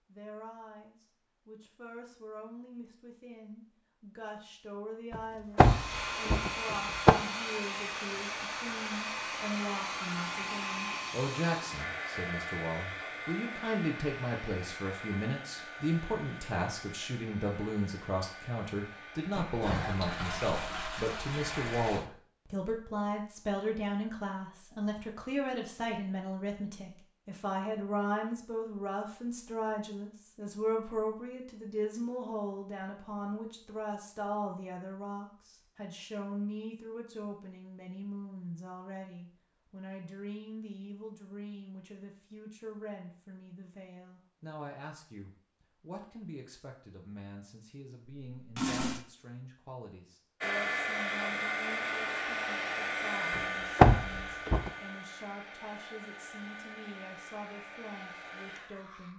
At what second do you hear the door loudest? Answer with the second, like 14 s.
54 s.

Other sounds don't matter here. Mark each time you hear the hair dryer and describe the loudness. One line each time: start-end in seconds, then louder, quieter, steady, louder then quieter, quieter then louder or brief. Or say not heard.
5.5-21.9 quieter
50.4-59.1 quieter.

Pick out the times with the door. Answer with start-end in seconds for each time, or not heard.
5.5-7.2, 53.4-54.7.